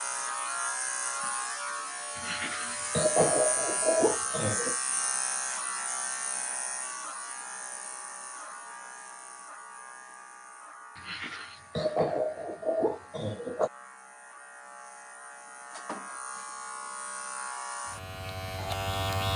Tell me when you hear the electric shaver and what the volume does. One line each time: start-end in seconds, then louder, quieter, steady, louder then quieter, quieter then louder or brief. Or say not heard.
0.0-19.3 quieter then louder.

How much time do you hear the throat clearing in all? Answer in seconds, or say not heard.
5 s.